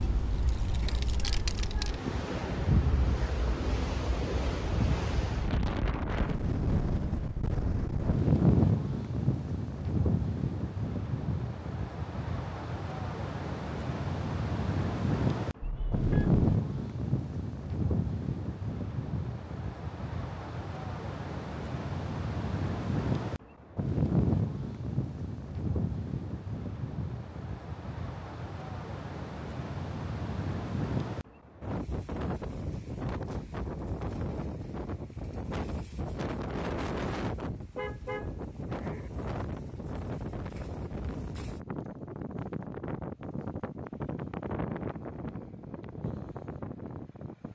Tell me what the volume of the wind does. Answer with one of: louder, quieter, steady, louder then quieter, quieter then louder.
quieter.